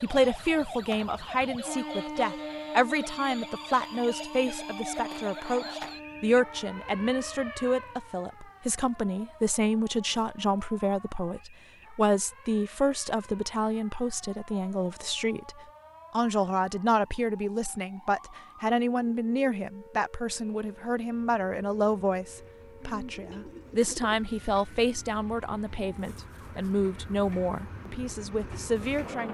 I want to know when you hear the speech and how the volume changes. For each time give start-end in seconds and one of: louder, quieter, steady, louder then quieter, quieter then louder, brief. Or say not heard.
0.0-29.3 steady.